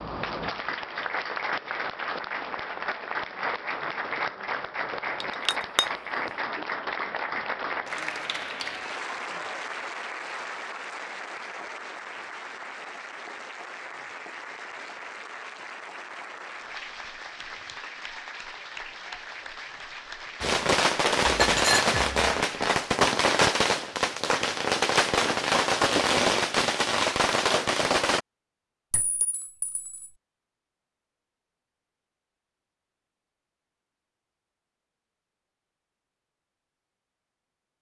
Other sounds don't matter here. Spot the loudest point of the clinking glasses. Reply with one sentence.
The loudest moment of the clinking glasses is at 22 seconds.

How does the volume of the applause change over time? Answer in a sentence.
The volume of the applause goes down.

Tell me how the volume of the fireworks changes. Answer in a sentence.
The volume of the fireworks stays about the same.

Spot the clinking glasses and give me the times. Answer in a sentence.
You can hear the clinking glasses from 5.2 to 5.8 s, from 21.2 to 22.4 s and from 28.9 to 30.1 s.